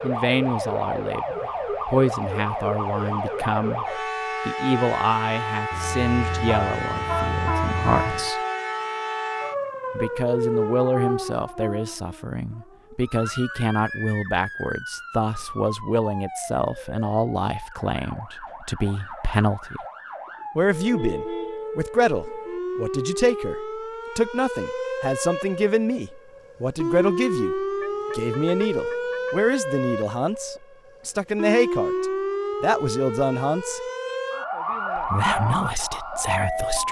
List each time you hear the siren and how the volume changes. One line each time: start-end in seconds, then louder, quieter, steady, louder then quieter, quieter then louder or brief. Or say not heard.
0.0-36.8 quieter then louder.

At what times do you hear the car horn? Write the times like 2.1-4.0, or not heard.
5.7-8.3, 20.2-21.6, 27.8-29.4.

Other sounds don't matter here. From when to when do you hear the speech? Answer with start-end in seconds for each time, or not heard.
0.0-8.4, 9.9-19.8, 20.6-33.8, 35.0-36.8.